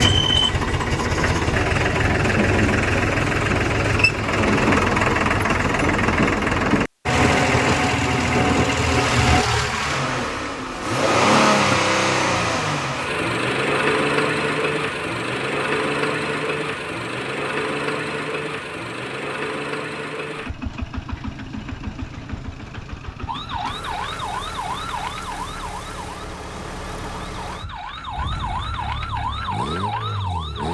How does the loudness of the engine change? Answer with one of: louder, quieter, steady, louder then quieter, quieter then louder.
quieter.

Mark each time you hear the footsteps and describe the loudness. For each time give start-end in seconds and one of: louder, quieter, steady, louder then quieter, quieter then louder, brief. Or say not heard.
not heard.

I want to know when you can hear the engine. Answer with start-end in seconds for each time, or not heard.
0.0-30.6.